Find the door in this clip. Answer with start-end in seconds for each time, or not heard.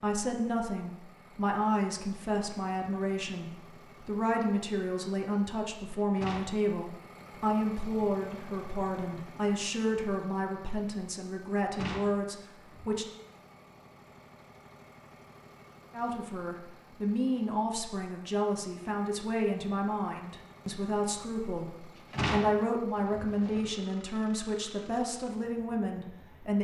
6.2-6.6, 11.7-13.0, 21.9-23.7.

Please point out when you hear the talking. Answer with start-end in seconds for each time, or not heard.
0.0-13.1, 15.9-26.6.